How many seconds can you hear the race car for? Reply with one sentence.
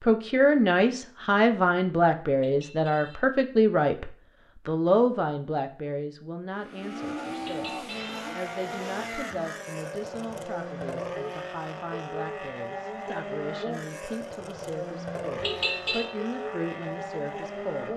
You can hear the race car for 11 seconds altogether.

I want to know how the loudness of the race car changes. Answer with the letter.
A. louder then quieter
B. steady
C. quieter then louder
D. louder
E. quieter
B.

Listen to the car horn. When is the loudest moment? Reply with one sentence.
The volume of the car horn peaks at 16 seconds.